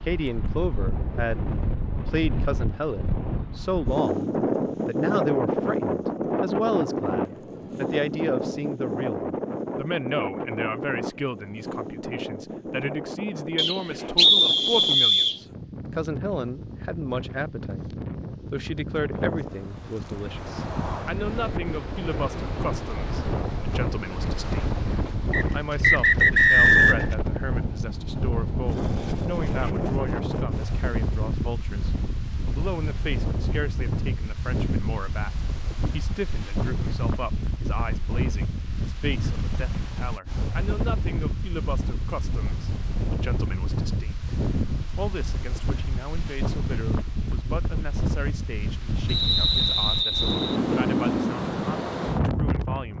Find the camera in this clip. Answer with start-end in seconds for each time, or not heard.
not heard.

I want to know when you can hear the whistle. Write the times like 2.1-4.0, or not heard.
13.6-15.4, 25.3-27.1, 49.0-50.6.